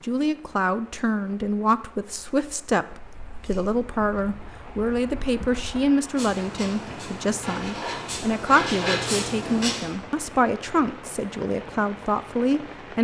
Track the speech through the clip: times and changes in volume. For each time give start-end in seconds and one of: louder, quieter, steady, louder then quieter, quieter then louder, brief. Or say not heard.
0.0-13.0 steady.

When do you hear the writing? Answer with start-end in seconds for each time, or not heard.
3.0-9.8.